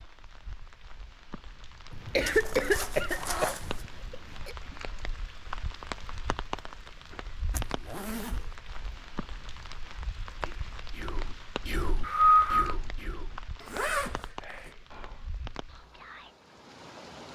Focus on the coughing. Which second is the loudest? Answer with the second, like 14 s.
12 s.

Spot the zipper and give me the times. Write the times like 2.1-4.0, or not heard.
2.2-3.9, 7.5-8.5, 13.6-14.7.